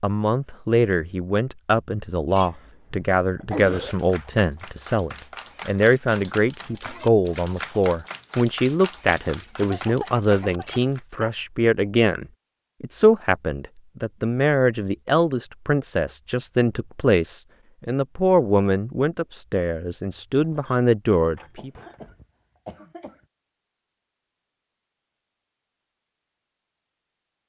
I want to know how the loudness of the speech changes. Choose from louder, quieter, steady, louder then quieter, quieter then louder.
steady.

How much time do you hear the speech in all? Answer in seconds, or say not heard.
22 s.